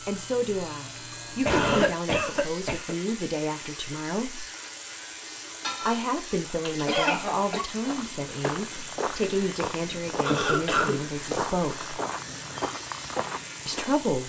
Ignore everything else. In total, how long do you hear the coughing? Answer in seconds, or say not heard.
5 s.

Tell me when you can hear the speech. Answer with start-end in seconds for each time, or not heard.
0.1-4.5, 5.8-11.9, 13.7-14.2.